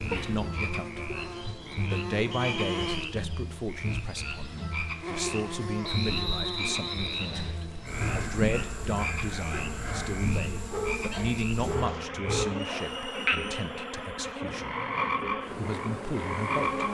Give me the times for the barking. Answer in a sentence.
The barking can be heard from 7.8 to 12.8 s.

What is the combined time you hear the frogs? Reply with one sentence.
You can hear the frogs for 17 seconds altogether.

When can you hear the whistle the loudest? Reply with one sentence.
The loudest moment of the whistle is at 6 seconds.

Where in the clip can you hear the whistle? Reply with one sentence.
You can hear the whistle from 2.3 to 3.0 s, from 5.8 to 7.5 s and from 12.8 to 13.7 s.